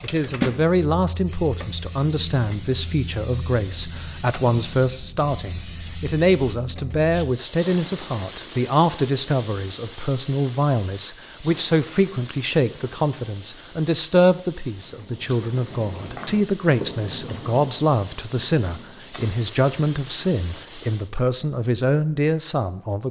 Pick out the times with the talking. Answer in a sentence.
You can hear the talking from 0.0 to 23.0 s.